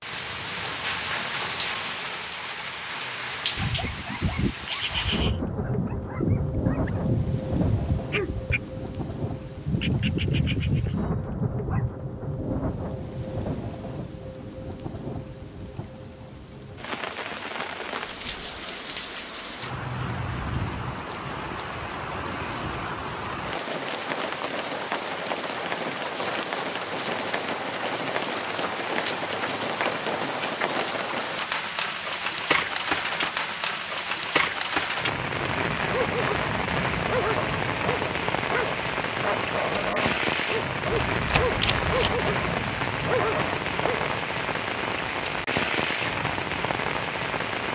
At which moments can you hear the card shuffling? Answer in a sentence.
The card shuffling can be heard from 40.9 to 42.3 s.